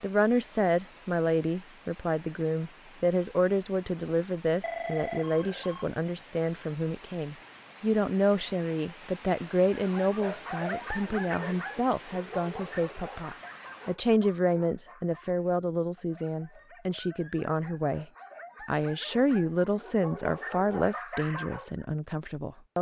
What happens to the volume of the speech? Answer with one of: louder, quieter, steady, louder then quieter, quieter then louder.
steady.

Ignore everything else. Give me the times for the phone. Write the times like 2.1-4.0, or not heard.
4.6-5.8.